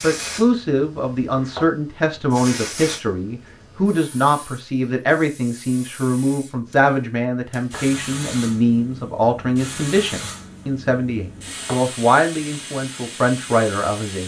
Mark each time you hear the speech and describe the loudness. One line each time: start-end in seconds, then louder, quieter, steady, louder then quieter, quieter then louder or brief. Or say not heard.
0.0-14.2 steady.